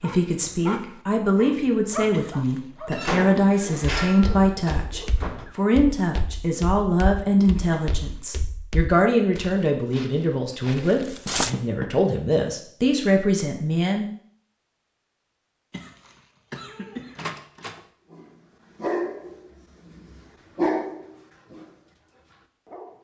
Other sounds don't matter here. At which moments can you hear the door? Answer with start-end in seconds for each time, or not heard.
2.9-5.5, 11.2-11.9, 17.1-17.8.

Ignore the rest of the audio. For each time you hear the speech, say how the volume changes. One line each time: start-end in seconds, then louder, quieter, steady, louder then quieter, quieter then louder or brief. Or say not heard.
0.0-14.1 steady.